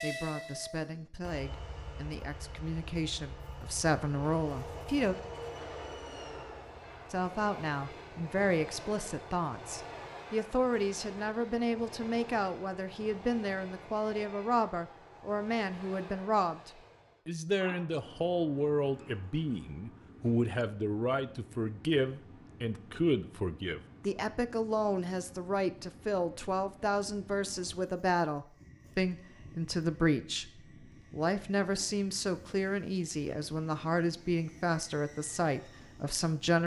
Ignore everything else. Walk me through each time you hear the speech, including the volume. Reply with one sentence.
You can hear the speech from 0.0 to 5.2 s, getting louder; and from 7.1 to 36.6 s, at a steady volume.